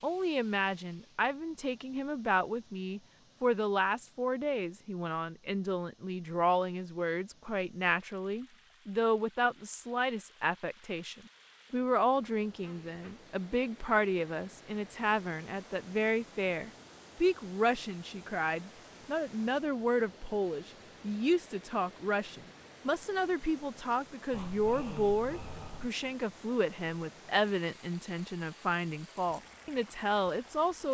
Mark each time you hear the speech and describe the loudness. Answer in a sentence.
You can hear the speech from 0.0 to 30.8 s, at a steady volume.